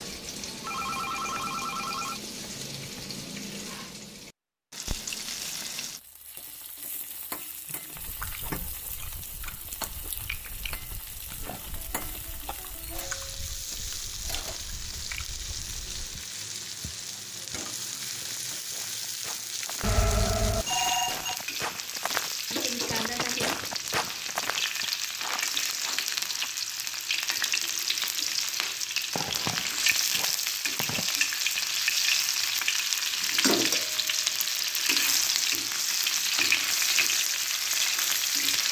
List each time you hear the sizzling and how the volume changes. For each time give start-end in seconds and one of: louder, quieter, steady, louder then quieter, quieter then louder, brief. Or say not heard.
0.0-38.6 louder.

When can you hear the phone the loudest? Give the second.
21 s.